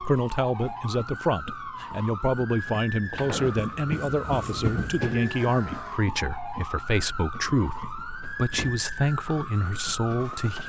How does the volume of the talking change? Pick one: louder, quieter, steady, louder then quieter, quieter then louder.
steady.